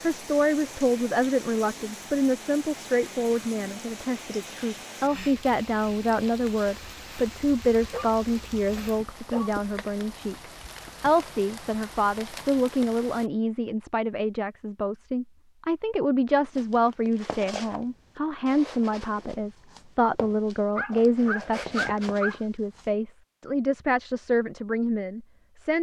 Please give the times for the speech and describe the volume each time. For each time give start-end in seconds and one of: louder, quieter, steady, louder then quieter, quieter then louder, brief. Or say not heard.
0.0-25.7 steady.